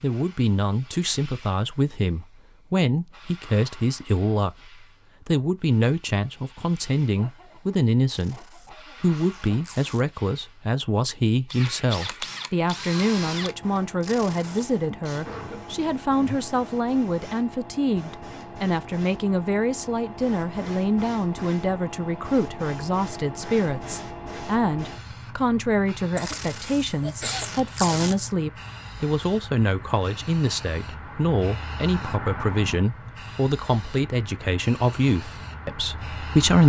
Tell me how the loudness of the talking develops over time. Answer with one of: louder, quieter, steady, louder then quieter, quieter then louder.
steady.